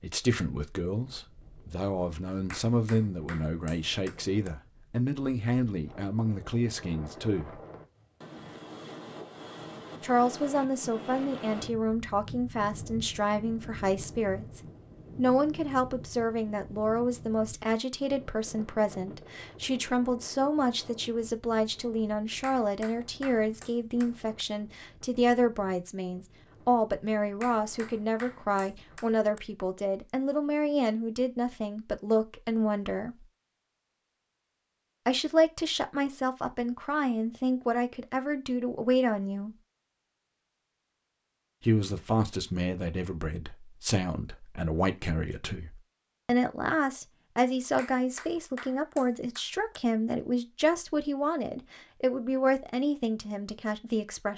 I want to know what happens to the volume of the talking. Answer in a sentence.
The loudness of the talking stays about the same.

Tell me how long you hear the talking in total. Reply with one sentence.
The talking can be heard for 48 seconds in total.